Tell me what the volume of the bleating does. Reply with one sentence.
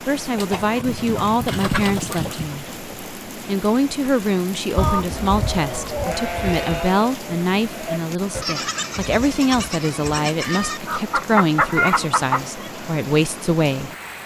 The volume of the bleating stays about the same.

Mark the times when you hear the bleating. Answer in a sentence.
You can hear the bleating from 5.2 to 11.0 s.